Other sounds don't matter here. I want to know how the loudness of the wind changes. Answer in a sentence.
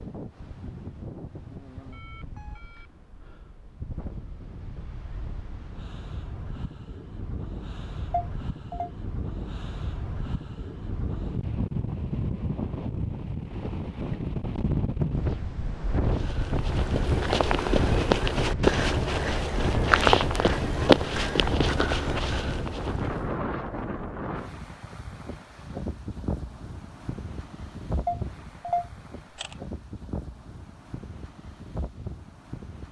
The volume of the wind goes up, then down.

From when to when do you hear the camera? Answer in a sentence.
The camera can be heard from 8.1 to 8.9 s and from 28.1 to 29.6 s.